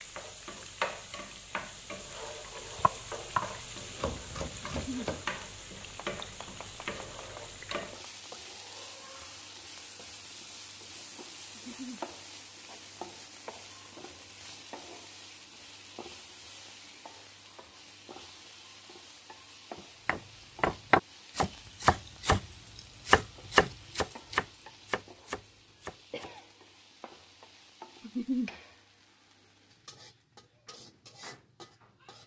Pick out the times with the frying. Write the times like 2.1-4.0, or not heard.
0.0-32.2.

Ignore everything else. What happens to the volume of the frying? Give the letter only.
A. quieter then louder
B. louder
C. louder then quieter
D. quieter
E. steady
D.